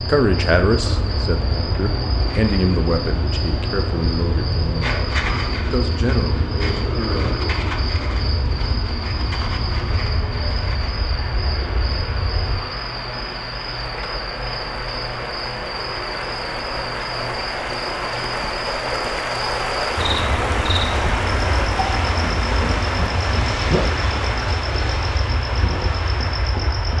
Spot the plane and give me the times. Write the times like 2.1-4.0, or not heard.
0.0-12.6, 19.9-26.9.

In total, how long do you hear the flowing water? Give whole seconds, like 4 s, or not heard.
27 s.